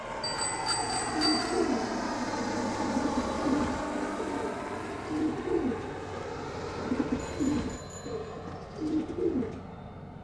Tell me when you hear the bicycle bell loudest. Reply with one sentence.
The volume of the bicycle bell peaks at 1 second.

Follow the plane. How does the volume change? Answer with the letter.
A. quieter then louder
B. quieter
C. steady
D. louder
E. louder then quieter
B.